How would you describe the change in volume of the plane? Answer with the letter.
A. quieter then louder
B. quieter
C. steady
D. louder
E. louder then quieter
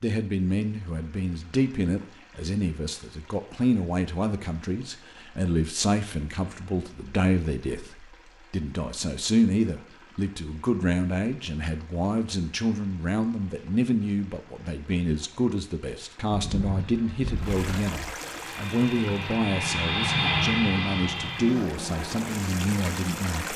E.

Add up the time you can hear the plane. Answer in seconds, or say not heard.
5 s.